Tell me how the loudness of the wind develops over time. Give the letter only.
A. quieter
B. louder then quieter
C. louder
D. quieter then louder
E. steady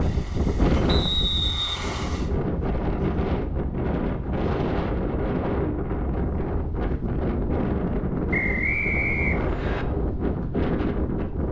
E.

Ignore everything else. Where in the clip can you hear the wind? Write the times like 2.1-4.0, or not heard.
0.0-11.4.